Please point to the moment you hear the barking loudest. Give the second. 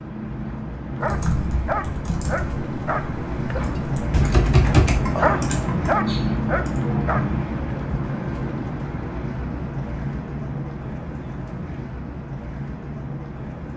5 s.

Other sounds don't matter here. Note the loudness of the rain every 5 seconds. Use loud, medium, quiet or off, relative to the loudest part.
loud, loud, medium.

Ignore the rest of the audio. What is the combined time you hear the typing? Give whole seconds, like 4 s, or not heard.
6 s.